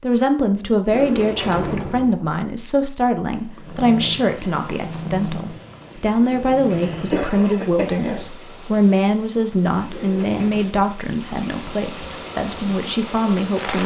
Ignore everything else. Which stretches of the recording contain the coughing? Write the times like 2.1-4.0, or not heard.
7.1-8.3.